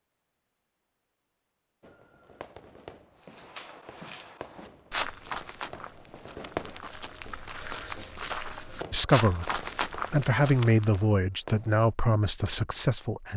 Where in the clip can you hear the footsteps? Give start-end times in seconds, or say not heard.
3.2-11.1.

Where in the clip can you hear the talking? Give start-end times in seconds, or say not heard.
8.9-13.3.